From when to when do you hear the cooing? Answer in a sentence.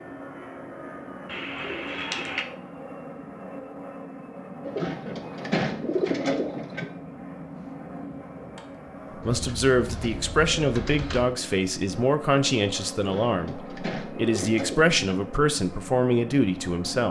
You can hear the cooing from 1.2 to 2.5 s, from 4.7 to 6.8 s, from 9.2 to 11.2 s and from 12.9 to 14.9 s.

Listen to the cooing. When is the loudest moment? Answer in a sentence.
The loudest moment of the cooing is at 6 seconds.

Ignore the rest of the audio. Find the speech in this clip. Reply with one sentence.
You can hear the speech from 9.2 to 17.0 s.